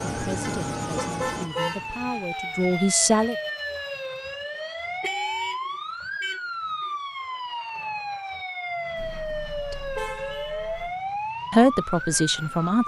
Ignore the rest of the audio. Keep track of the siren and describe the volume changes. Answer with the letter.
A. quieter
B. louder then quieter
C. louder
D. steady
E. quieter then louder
D.